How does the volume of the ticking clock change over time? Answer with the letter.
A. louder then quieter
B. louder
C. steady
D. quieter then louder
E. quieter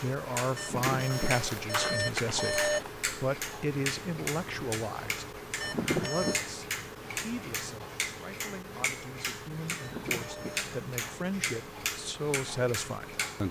C.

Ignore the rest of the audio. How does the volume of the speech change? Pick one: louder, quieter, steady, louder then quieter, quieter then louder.
quieter then louder.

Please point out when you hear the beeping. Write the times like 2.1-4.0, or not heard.
0.6-3.0, 5.6-6.4, 9.8-10.8.